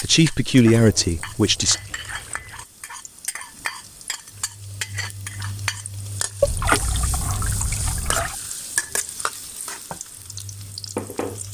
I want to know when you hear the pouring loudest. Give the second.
7 s.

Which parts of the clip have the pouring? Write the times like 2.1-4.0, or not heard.
0.7-2.6, 6.4-8.3.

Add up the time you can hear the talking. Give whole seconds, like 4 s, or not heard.
2 s.